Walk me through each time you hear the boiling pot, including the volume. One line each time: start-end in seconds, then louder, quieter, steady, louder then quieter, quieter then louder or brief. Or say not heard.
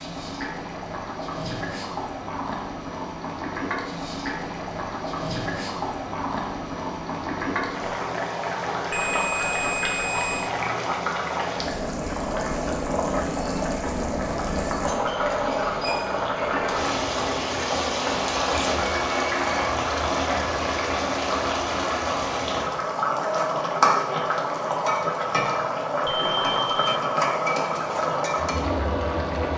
0.0-29.5 louder.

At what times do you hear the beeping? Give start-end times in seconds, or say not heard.
8.9-10.5, 26.1-27.0.